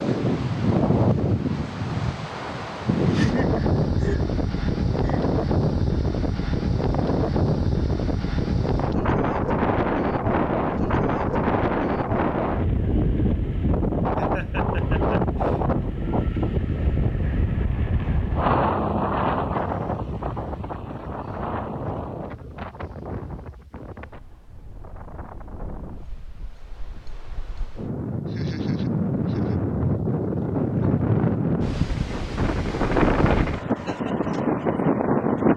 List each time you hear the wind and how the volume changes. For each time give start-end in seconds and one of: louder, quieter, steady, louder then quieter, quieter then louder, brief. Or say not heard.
0.0-35.5 quieter then louder.